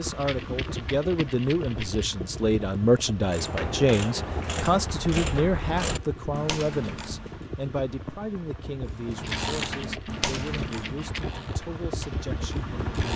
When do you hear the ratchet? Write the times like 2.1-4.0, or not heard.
3.2-7.5, 8.8-13.1.